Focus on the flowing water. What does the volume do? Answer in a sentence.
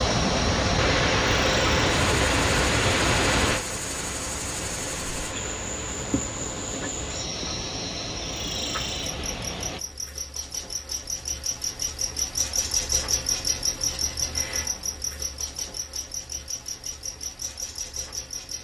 The loudness of the flowing water goes down.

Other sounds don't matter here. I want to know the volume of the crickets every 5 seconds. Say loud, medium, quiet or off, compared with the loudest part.
medium, medium, loud, medium.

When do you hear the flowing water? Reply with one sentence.
The flowing water can be heard from 0.0 to 9.8 s.